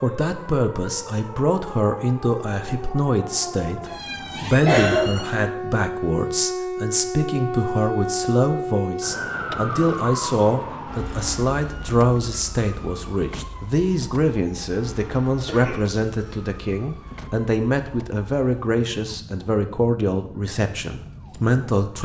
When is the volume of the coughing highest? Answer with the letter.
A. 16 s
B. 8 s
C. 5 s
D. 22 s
C.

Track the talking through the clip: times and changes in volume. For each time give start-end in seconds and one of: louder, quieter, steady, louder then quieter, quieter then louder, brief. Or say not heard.
0.0-22.0 steady.